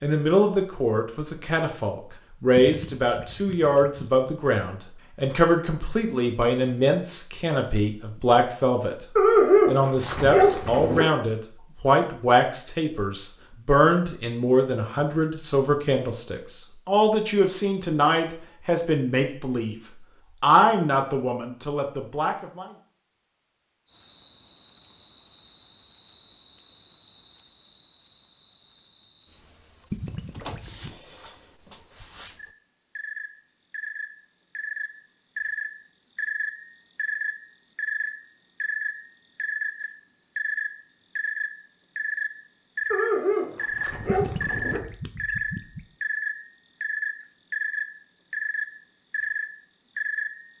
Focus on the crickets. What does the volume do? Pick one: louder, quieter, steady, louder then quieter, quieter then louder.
quieter then louder.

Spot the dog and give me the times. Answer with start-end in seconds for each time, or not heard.
9.2-11.1, 42.9-44.8.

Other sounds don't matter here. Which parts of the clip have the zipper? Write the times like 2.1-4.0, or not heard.
not heard.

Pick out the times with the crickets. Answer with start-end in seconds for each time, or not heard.
23.9-50.5.